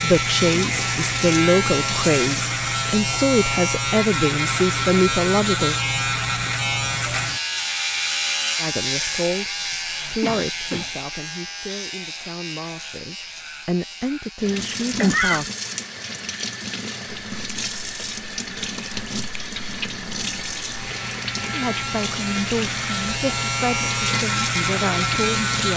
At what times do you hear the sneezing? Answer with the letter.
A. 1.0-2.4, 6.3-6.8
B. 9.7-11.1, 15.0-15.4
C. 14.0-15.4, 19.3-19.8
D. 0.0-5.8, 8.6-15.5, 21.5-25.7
B.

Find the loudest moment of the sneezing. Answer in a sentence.
The volume of the sneezing peaks at 15 seconds.